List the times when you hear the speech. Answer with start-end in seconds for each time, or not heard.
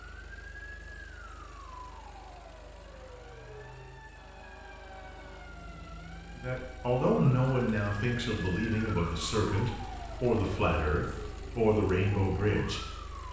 6.3-13.2.